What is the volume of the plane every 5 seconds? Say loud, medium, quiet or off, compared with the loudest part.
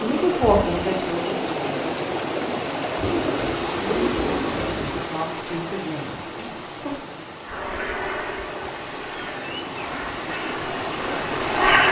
off, medium, loud.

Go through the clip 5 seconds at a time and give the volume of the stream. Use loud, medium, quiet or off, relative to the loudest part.
loud, medium, loud.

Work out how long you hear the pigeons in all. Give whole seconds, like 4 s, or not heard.
2 s.